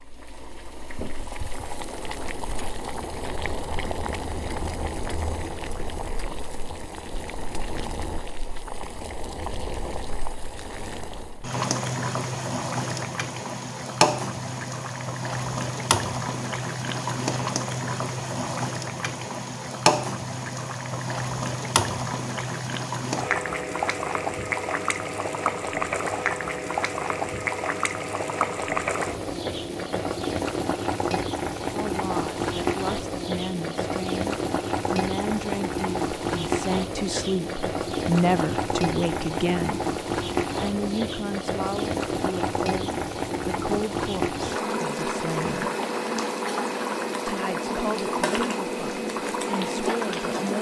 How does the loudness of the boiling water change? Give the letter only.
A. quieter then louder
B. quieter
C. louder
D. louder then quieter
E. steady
C.